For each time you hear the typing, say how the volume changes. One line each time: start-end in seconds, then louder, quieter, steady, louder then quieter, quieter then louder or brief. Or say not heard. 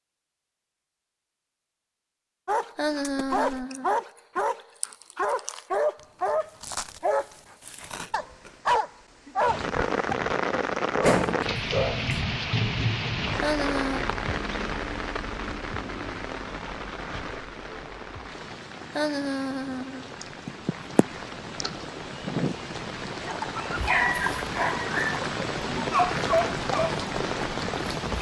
not heard.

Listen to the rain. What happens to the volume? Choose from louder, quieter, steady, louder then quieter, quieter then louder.
quieter then louder.